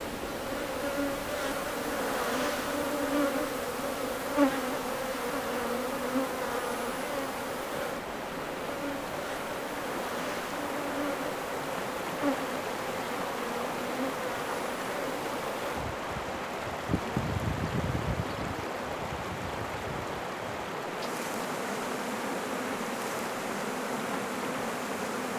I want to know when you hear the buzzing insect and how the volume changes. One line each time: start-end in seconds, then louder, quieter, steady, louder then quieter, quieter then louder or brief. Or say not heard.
0.0-25.3 quieter.